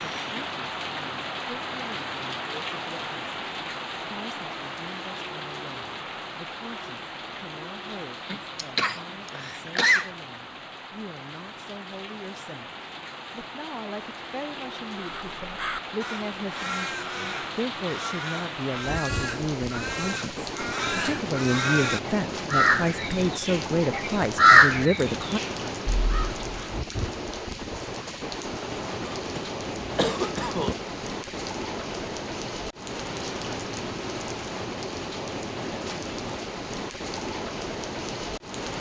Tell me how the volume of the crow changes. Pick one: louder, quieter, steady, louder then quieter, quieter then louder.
louder.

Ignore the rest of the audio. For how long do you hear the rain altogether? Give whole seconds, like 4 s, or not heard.
39 s.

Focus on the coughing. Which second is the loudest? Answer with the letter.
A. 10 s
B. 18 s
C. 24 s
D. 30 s
A.